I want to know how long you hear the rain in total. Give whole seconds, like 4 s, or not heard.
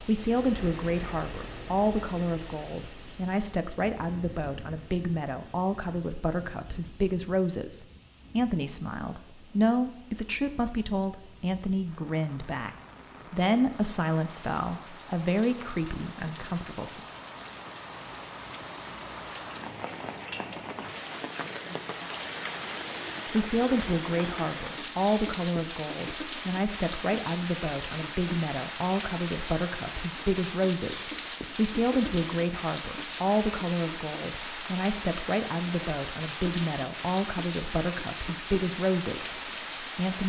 40 s.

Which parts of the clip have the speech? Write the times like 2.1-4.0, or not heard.
0.0-17.0, 23.2-40.2.